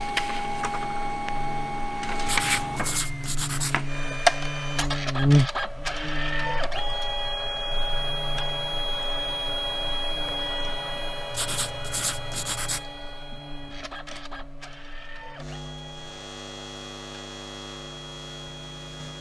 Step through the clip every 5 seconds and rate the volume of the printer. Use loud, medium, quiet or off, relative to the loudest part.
loud, loud, medium, quiet.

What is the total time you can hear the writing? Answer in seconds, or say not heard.
3 s.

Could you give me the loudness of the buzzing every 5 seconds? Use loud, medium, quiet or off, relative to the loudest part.
medium, loud, quiet, quiet.